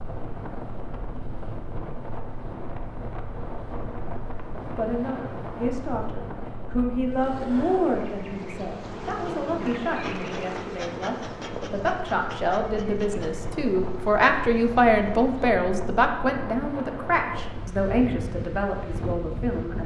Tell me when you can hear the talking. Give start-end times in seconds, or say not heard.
4.7-19.8.